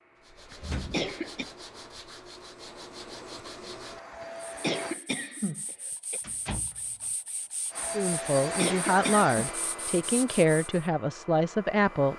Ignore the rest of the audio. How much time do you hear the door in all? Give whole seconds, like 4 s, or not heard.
2 s.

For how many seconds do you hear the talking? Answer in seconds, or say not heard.
4 s.